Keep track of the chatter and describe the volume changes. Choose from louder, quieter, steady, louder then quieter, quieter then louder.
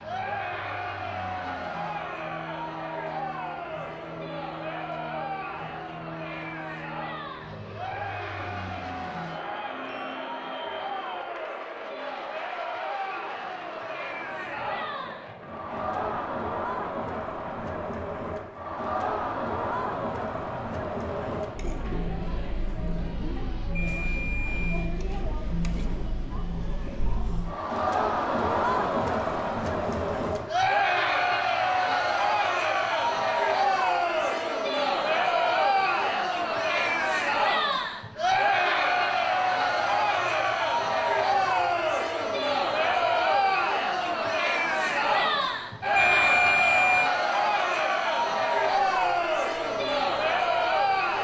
louder.